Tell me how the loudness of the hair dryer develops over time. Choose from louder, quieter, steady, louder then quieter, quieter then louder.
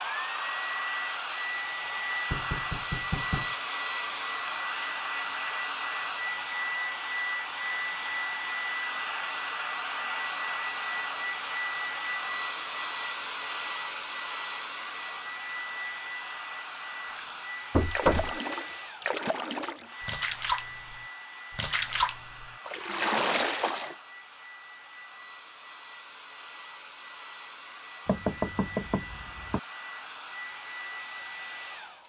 quieter.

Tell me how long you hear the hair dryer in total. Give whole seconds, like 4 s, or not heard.
32 s.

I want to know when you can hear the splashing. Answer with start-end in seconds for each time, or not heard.
17.1-23.9.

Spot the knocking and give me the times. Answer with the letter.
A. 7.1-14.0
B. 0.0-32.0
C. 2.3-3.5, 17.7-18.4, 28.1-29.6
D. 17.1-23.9
C.